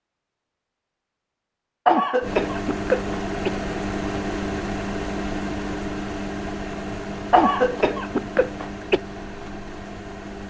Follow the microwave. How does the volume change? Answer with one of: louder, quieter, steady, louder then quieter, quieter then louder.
quieter.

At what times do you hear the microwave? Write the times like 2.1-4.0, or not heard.
2.2-10.4.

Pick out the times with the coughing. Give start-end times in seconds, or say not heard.
1.9-3.6, 7.3-9.0.